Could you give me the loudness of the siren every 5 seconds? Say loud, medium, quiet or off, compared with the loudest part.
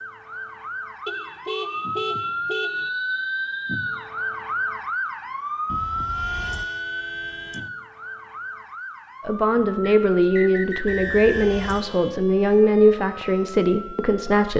loud, loud, medium.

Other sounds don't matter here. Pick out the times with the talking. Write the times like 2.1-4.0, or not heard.
9.2-14.5.